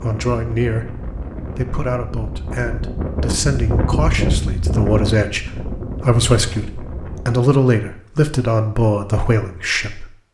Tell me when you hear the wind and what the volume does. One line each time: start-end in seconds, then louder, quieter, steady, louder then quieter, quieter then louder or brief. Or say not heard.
0.0-7.5 louder then quieter.